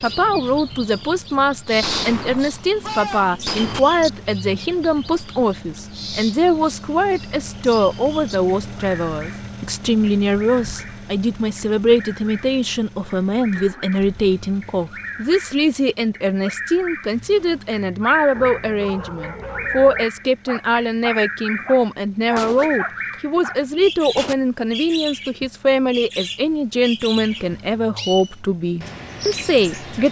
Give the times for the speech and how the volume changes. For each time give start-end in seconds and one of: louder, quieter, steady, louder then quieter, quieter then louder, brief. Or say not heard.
0.0-30.0 steady.